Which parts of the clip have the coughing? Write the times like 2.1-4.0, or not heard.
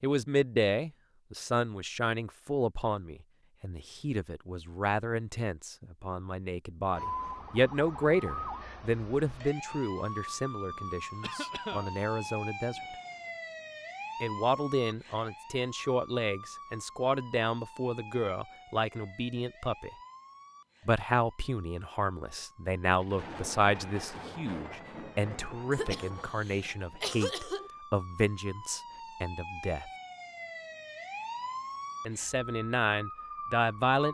11.2-11.9, 25.7-27.7.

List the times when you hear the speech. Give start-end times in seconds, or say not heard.
0.0-12.8, 14.2-19.9, 20.9-29.9, 32.0-34.0.